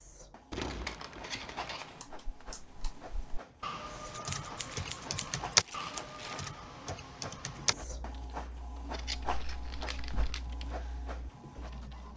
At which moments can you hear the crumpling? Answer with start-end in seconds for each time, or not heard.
0.5-1.8, 4.6-6.5, 9.3-10.5.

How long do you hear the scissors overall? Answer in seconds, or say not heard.
5 s.